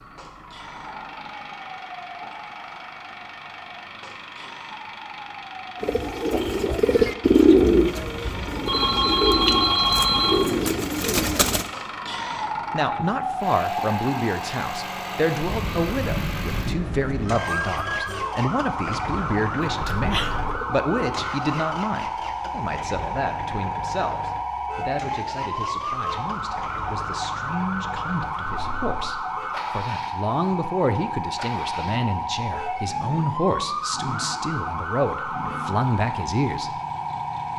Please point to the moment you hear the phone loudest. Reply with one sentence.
The volume of the phone peaks at 10 seconds.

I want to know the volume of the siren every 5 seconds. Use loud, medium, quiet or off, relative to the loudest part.
quiet, medium, loud, loud, loud, loud, loud, loud.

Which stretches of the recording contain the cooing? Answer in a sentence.
The cooing can be heard from 5.8 to 11.7 s and from 19.7 to 21.2 s.